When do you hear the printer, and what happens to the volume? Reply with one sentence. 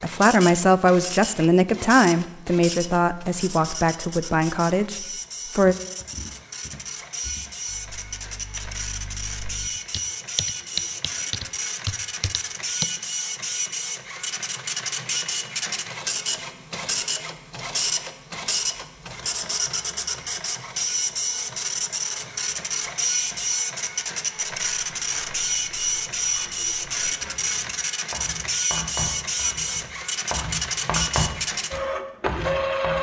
The printer can be heard from 0.0 to 32.9 s, getting louder.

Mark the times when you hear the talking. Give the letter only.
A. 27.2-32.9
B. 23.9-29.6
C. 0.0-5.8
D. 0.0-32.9
C.